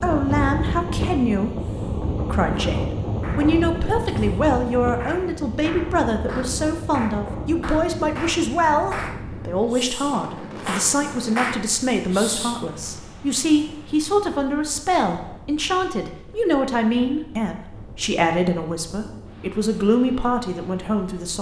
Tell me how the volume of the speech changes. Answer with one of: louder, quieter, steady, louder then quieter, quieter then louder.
steady.